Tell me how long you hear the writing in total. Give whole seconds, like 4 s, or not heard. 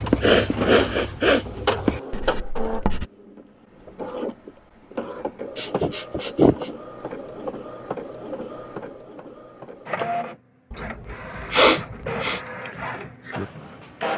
3 s.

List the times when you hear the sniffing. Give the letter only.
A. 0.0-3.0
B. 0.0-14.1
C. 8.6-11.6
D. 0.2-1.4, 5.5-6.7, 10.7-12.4
D.